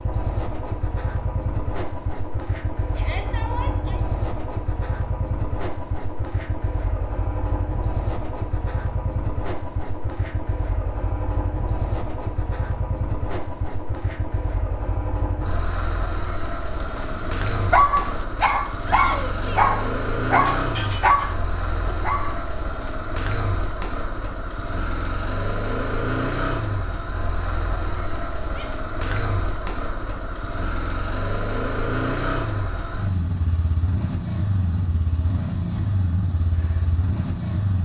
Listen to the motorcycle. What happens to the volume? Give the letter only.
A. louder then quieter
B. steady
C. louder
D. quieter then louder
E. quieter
B.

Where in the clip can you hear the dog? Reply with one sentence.
The dog can be heard from 16.9 to 22.4 s.